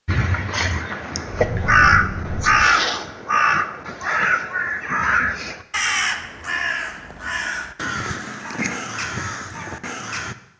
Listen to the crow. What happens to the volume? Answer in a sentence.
The volume of the crow goes down.